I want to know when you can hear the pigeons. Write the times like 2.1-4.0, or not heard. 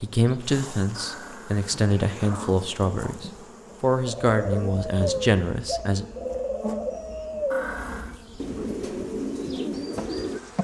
4.0-10.4.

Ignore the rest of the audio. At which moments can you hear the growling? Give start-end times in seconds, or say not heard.
0.9-2.6, 7.5-8.2.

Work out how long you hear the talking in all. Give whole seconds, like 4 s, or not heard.
6 s.